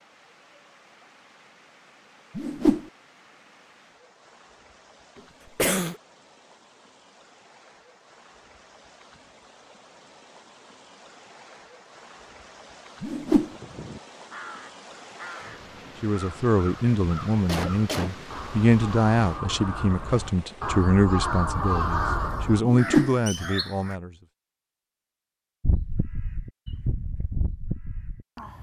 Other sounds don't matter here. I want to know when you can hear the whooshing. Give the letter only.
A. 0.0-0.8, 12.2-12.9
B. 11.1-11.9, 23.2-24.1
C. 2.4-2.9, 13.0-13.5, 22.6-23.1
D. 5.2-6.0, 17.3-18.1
C.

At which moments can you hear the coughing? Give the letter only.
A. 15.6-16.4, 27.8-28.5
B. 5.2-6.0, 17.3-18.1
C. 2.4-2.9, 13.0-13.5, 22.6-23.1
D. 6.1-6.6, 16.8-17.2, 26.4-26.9
B.